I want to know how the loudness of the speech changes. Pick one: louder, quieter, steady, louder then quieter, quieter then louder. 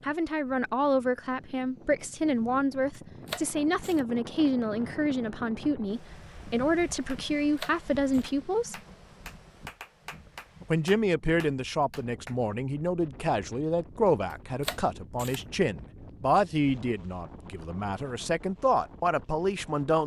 steady.